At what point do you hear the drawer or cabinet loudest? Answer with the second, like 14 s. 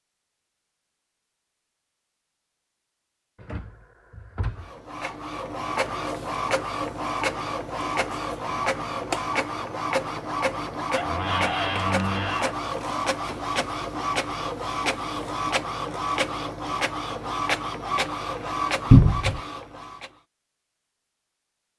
19 s.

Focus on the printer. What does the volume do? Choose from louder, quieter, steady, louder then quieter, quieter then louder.
steady.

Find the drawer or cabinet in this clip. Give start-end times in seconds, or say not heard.
3.4-4.7, 10.9-12.6, 18.9-19.4.